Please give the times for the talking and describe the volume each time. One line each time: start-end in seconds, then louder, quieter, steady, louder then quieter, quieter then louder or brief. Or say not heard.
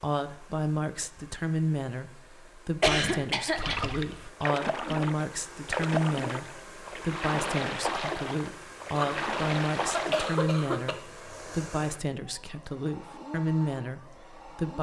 0.0-14.7 steady.